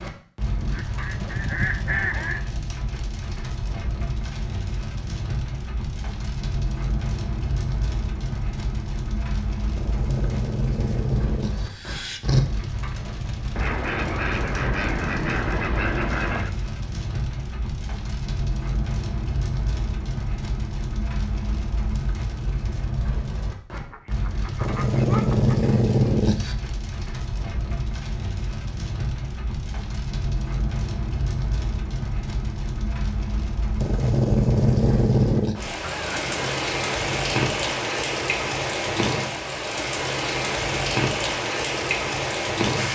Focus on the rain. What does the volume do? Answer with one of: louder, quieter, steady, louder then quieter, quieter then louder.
louder.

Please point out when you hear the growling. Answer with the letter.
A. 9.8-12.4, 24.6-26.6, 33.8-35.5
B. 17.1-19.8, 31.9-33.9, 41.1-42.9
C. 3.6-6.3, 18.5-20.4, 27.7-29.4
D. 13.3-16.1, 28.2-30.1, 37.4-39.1
A.